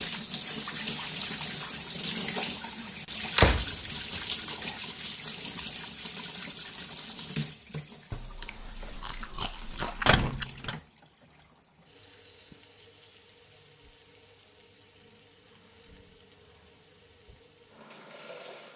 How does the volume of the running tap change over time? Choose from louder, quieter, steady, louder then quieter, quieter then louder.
quieter.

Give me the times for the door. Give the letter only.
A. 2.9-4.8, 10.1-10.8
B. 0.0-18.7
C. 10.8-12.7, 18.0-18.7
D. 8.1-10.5
A.